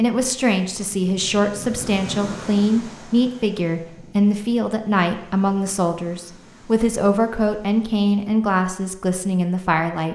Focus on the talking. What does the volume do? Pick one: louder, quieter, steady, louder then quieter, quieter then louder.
steady.